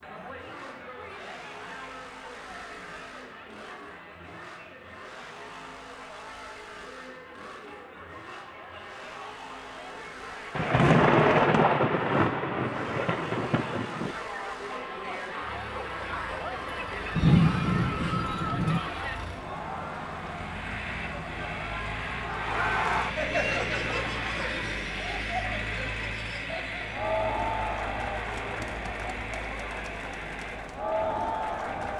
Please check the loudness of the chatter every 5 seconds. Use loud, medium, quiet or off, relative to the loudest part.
quiet, quiet, medium, loud, loud, loud, loud.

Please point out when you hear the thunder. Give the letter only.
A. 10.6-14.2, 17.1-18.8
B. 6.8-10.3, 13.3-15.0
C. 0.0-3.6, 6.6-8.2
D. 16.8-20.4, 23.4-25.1
A.